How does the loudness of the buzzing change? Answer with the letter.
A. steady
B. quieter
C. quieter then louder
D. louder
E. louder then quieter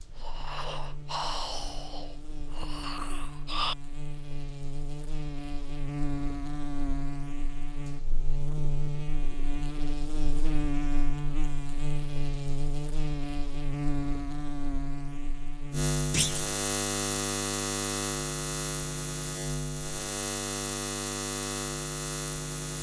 D.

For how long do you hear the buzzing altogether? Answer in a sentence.
The buzzing can be heard for 23 seconds in total.